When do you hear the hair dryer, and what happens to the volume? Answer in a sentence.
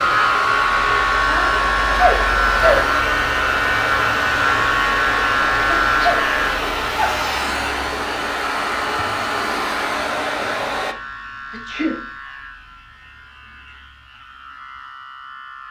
The hair dryer can be heard from 0.0 to 10.9 s, at a steady volume.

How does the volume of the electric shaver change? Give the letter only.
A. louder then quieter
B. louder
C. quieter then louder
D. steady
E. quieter
E.